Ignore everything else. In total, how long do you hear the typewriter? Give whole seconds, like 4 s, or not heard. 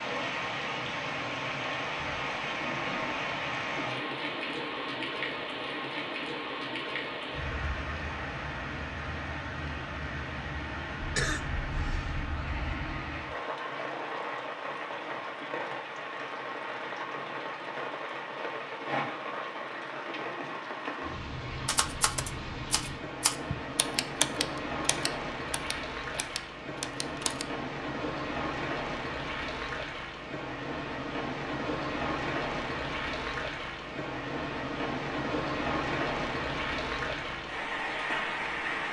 6 s.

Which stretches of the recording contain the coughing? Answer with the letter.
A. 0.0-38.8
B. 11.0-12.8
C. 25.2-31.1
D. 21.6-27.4
B.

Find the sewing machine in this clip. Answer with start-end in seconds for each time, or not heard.
not heard.